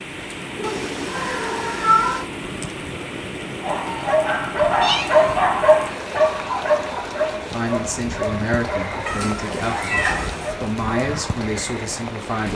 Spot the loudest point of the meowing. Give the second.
2 s.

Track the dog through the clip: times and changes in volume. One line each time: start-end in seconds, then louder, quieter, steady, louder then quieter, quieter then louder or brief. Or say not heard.
3.6-11.3 quieter.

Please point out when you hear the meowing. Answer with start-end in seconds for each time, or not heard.
0.6-2.2, 4.8-5.4, 9.1-10.6.